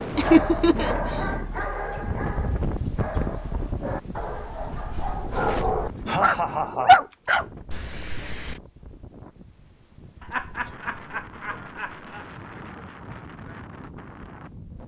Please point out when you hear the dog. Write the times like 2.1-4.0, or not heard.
0.1-8.6.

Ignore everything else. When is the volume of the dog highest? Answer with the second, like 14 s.
7 s.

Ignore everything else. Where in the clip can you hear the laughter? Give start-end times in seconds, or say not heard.
0.1-1.3, 5.6-7.0, 10.2-12.2.